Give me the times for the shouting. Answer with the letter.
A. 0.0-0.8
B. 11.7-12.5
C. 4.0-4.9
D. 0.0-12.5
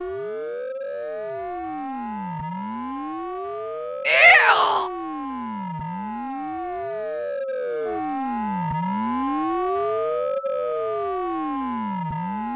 C.